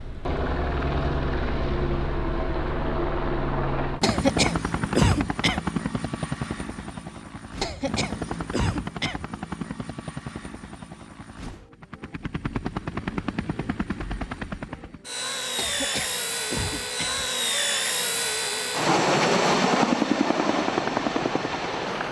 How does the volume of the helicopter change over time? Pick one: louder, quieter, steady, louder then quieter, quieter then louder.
quieter then louder.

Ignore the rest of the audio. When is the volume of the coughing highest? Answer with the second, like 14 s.
5 s.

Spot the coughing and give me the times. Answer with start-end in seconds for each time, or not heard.
4.0-5.6, 7.6-9.2, 15.6-17.2.